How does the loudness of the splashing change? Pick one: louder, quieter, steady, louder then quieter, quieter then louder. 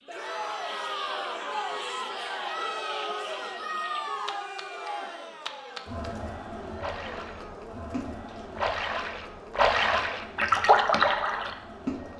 louder.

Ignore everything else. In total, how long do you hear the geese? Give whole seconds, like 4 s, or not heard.
not heard.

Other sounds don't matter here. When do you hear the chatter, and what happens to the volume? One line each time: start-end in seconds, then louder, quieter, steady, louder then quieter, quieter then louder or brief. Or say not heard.
0.1-12.1 quieter.